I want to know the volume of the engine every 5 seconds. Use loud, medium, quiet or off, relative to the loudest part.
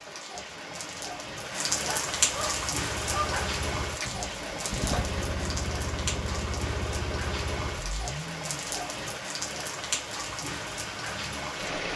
loud, loud, off.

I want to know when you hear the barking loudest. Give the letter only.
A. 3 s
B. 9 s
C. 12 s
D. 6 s
A.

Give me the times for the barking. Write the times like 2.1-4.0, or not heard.
1.7-3.5.